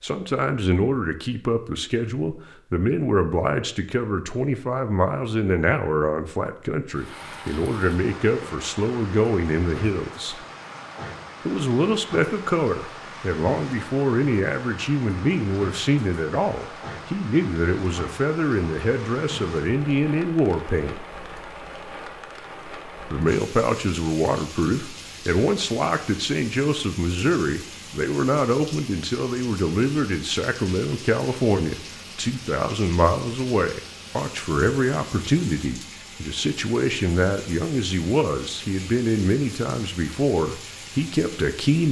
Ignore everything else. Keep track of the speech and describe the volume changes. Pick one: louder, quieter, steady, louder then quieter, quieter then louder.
steady.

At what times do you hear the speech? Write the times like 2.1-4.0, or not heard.
0.0-10.3, 11.4-21.0, 23.1-41.8.